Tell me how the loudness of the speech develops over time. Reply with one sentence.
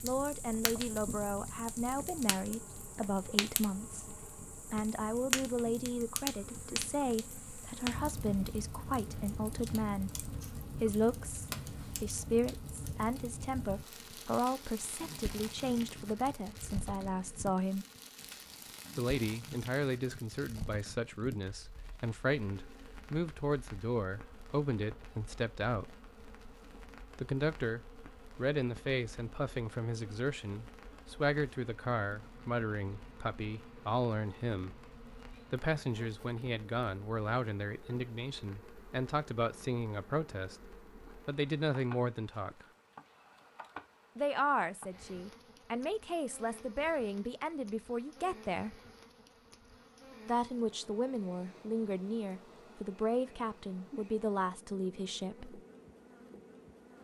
The volume of the speech stays about the same.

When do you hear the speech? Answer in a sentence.
The speech can be heard from 0.0 to 17.9 s, from 18.9 to 25.9 s, from 27.1 to 42.6 s, from 44.1 to 48.8 s and from 50.2 to 55.6 s.